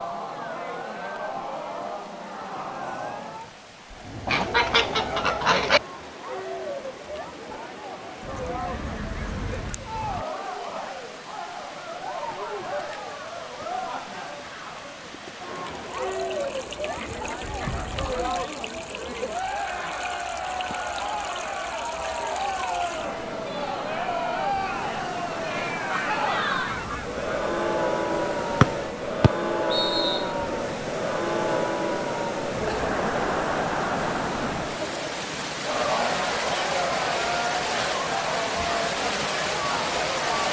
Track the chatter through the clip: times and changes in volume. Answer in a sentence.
The chatter can be heard from 0.0 to 40.4 s, getting louder.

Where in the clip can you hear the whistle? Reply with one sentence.
The whistle can be heard from 28.6 to 30.2 s.